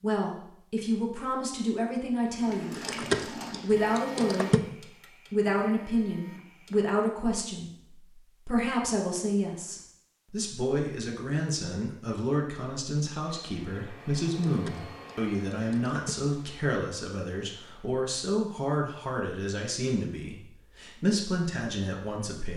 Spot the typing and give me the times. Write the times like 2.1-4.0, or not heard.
2.8-4.6, 14.4-16.1.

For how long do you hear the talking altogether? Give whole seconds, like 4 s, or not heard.
21 s.